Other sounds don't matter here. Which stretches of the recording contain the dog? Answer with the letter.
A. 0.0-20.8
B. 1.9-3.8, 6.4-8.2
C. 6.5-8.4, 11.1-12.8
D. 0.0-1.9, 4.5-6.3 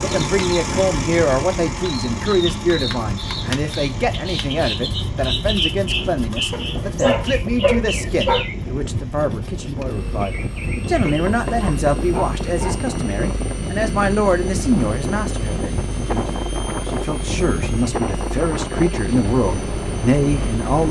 C.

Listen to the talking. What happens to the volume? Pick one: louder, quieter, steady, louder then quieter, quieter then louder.
steady.